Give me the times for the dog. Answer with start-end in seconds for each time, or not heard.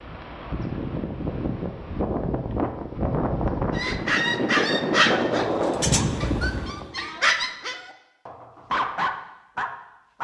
3.7-10.1.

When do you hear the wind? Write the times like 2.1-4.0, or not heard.
0.0-6.8.